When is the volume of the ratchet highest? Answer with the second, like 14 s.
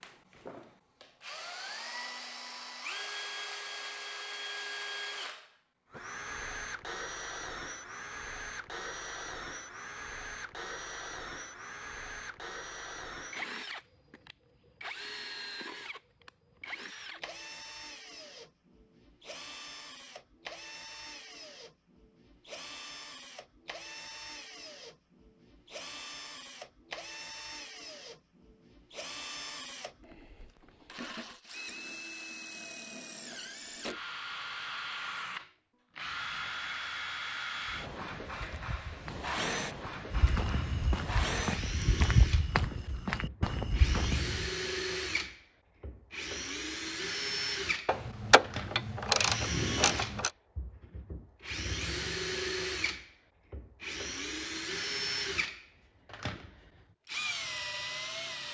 49 s.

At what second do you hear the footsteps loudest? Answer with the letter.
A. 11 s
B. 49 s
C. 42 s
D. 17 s
C.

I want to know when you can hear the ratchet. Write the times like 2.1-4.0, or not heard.
47.9-50.3.